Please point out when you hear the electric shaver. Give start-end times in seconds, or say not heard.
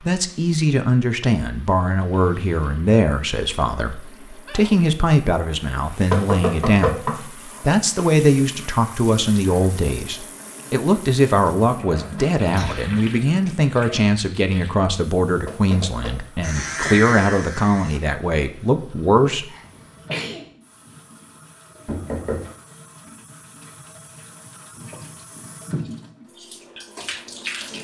16.4-18.0.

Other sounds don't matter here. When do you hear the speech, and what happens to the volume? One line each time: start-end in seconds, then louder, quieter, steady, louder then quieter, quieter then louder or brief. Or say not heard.
0.1-19.4 steady.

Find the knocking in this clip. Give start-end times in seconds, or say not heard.
6.1-7.2, 15.4-16.2, 21.9-22.5.